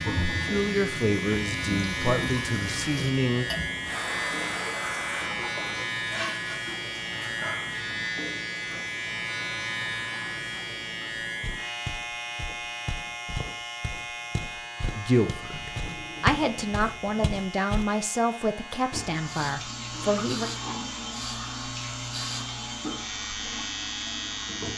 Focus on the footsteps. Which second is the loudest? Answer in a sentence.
The volume of the footsteps peaks at 16 seconds.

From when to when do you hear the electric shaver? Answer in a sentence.
You can hear the electric shaver from 0.0 to 24.7 s.